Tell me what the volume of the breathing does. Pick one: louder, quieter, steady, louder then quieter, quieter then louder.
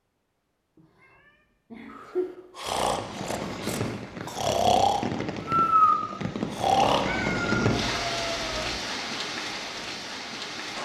quieter then louder.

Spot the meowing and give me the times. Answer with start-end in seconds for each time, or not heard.
0.8-2.3, 7.0-8.8.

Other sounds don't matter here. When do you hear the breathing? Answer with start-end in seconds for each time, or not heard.
1.9-7.0.